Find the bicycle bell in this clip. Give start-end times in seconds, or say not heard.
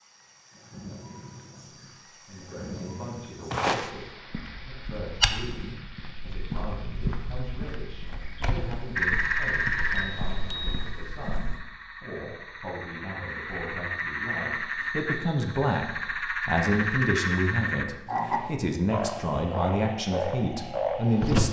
9.9-10.9.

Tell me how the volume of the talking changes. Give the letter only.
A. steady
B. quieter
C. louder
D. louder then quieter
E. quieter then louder
C.